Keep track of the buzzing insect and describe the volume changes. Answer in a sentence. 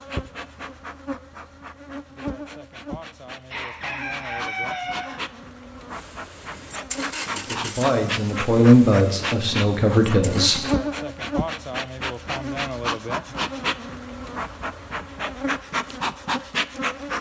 The loudness of the buzzing insect goes up.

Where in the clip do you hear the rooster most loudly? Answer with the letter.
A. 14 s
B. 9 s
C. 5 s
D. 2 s
C.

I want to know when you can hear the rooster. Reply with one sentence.
You can hear the rooster from 3.5 to 5.2 s.